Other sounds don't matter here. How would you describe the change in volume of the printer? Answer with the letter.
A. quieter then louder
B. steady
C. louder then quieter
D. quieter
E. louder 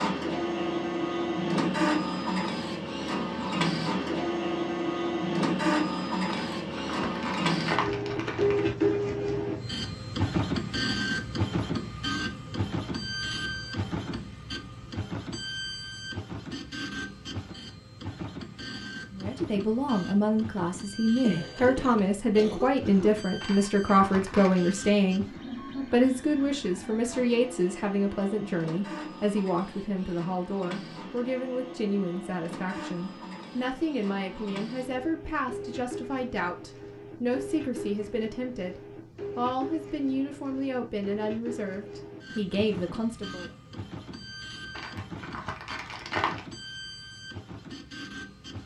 D.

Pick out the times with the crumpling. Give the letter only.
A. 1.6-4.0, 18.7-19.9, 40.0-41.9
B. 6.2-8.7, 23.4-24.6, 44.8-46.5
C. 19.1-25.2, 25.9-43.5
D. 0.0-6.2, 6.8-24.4
B.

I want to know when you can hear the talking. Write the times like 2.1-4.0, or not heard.
19.1-25.2, 25.9-43.5.